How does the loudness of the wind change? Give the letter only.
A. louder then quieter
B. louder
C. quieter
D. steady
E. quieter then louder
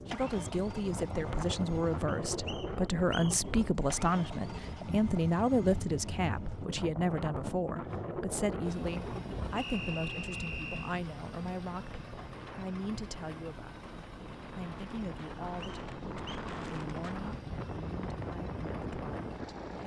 E.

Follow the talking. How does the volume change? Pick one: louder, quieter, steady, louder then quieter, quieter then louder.
quieter.